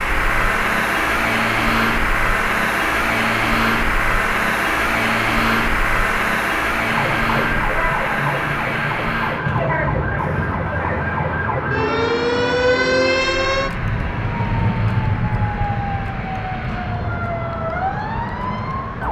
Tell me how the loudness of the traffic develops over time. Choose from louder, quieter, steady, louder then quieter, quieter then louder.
quieter.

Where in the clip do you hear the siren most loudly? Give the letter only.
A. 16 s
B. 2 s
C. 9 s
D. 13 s
D.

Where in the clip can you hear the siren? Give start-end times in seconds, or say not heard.
6.8-19.0.